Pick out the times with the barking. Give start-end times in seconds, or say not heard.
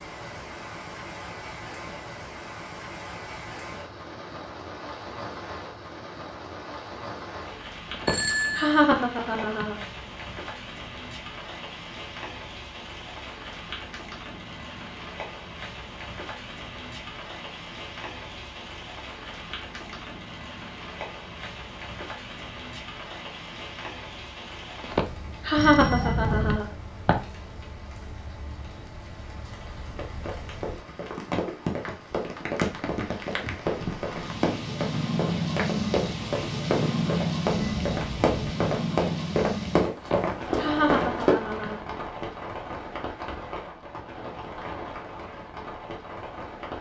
not heard.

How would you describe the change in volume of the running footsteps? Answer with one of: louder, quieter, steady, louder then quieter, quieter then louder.
louder.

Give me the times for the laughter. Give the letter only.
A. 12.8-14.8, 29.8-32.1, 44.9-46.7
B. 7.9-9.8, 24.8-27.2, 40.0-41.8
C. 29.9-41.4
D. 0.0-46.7
B.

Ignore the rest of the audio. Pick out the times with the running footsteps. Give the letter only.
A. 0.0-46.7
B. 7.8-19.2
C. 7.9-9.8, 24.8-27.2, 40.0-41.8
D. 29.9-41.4
D.